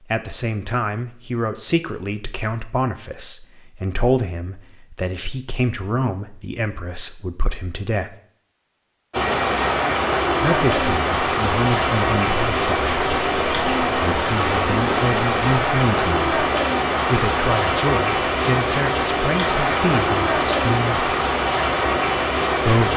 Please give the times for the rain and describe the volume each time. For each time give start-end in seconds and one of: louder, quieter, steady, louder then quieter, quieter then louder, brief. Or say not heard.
9.1-22.9 steady.